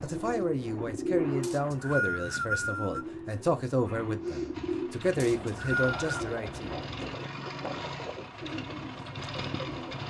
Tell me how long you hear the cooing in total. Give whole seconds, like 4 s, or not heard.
10 s.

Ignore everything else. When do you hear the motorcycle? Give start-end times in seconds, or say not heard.
4.5-10.0.